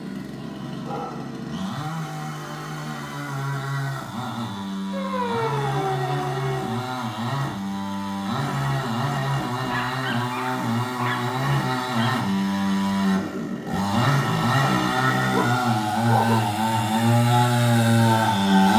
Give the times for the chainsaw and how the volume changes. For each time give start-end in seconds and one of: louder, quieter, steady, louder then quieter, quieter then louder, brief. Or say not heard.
0.0-18.7 louder.